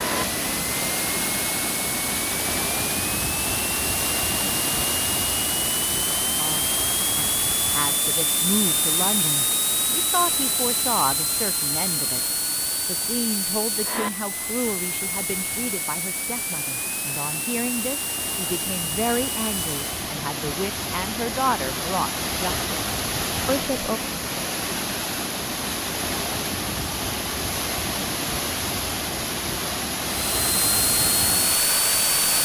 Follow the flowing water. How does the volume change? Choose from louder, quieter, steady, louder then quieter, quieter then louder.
quieter then louder.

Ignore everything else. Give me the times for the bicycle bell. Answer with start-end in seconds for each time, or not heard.
not heard.